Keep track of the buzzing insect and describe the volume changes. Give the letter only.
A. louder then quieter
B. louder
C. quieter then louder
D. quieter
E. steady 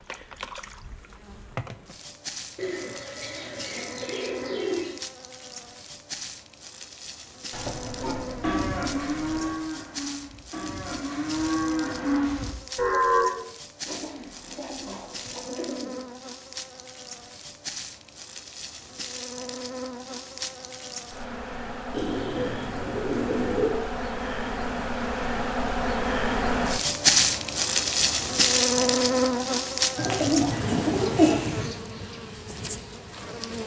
B.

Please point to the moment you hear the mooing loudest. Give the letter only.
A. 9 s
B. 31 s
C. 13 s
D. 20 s
C.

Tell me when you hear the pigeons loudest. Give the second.
31 s.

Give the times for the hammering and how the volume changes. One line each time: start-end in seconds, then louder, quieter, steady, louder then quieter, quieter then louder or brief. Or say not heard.
not heard.